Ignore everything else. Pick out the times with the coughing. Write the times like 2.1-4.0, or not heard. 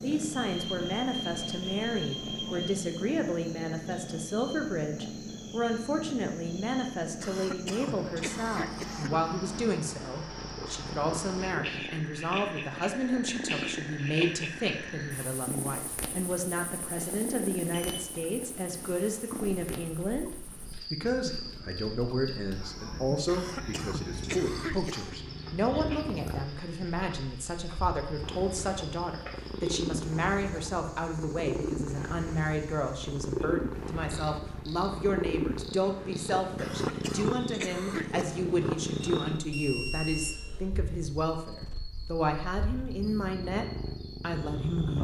7.2-9.2, 23.2-25.1, 36.5-38.5.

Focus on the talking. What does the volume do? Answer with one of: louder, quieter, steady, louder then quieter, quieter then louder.
steady.